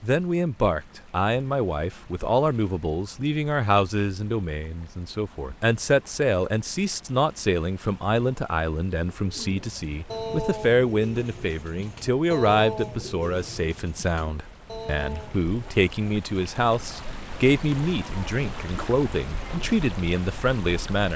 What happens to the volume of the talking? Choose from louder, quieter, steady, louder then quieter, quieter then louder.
steady.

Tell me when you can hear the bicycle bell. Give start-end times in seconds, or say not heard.
not heard.